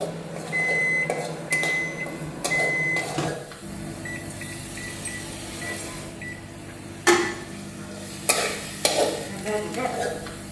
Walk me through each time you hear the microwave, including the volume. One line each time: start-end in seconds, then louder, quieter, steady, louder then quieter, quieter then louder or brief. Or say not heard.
0.0-10.4 quieter.